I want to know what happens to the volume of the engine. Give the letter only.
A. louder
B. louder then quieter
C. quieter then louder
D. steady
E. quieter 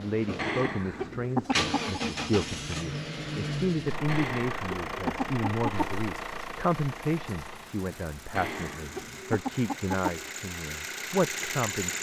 C.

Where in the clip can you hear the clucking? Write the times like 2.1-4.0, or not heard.
0.3-2.0, 4.0-6.0, 8.3-10.3.